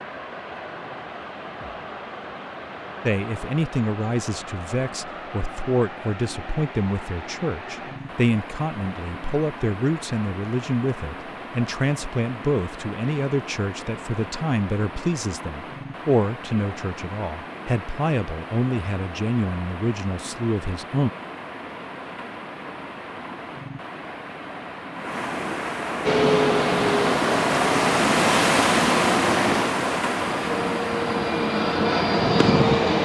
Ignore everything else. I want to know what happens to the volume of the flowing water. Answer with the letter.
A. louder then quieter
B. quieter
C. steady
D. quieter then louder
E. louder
E.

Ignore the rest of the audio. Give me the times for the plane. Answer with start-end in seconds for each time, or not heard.
26.0-33.0.